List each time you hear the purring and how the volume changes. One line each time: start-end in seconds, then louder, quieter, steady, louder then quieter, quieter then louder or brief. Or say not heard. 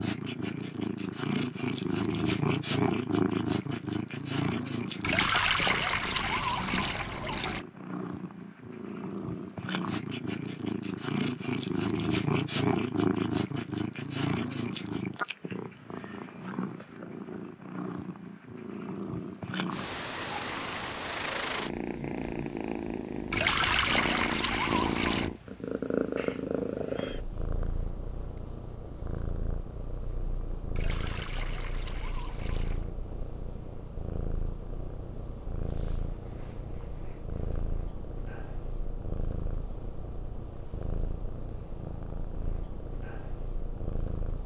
0.0-44.4 quieter.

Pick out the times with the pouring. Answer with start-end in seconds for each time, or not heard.
5.0-7.7, 23.3-25.3, 30.8-32.9.